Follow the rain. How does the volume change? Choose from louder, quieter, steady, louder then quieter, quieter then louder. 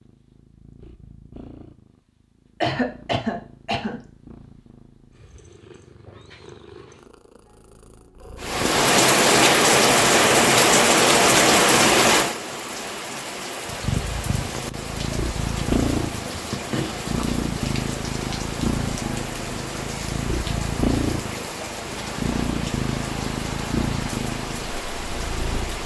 quieter.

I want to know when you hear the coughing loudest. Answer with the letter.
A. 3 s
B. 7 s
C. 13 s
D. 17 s
A.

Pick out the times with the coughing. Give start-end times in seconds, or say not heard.
2.6-4.0, 16.3-17.1.